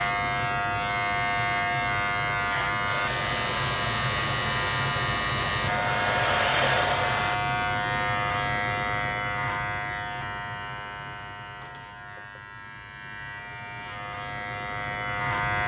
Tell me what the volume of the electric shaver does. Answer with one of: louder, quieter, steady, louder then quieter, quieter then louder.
quieter.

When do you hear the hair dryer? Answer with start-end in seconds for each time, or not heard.
2.9-7.4.